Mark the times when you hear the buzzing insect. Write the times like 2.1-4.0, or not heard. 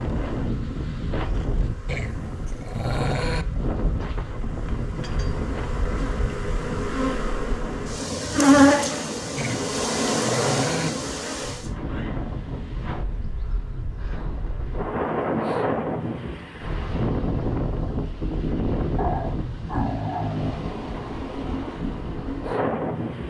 0.0-11.7.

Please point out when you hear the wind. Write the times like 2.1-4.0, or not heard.
0.0-23.2.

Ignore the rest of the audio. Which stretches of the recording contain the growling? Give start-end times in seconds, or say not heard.
1.9-3.5, 9.3-10.9, 18.9-20.6.